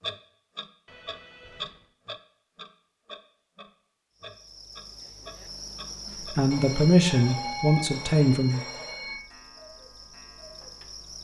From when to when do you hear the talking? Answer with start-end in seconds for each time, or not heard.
6.3-8.6.